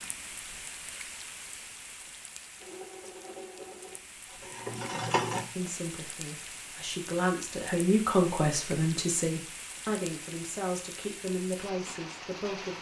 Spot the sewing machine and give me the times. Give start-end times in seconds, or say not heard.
2.6-5.5.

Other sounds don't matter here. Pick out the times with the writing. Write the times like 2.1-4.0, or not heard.
not heard.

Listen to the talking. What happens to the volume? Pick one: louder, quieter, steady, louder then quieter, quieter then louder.
louder then quieter.